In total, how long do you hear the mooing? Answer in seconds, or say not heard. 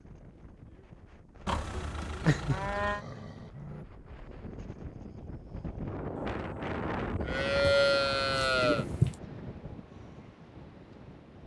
4 s.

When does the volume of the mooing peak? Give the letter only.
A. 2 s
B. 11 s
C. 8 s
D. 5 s
C.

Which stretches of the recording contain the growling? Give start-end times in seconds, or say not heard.
2.2-3.9, 7.6-9.2.